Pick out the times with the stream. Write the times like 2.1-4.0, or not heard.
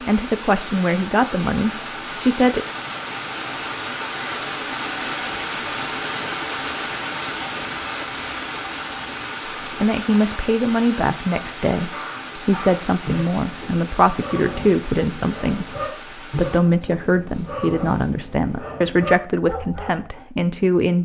0.0-16.6.